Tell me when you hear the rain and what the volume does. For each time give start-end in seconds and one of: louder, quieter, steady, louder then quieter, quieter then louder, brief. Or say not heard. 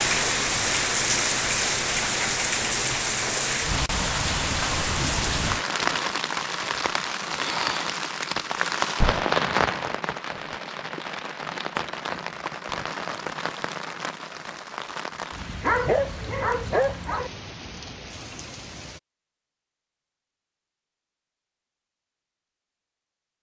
0.0-19.0 quieter.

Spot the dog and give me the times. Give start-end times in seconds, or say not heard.
15.6-17.3.